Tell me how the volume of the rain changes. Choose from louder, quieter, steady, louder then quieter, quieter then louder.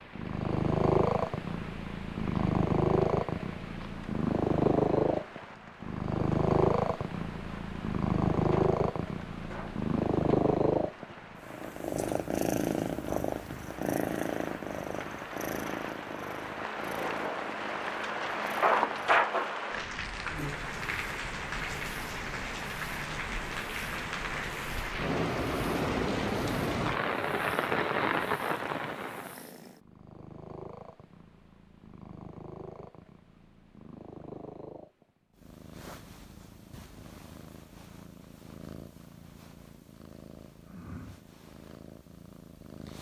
louder.